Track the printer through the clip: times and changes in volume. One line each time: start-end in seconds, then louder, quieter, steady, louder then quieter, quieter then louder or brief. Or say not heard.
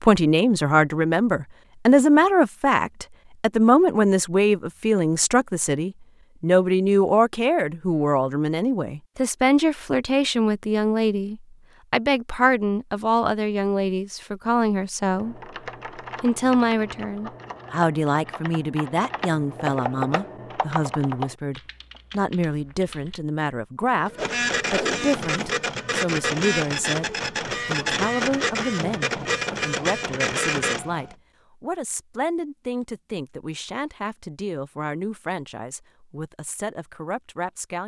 23.9-31.1 steady.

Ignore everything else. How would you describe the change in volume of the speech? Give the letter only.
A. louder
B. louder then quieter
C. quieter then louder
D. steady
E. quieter
E.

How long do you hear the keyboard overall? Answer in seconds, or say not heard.
8 s.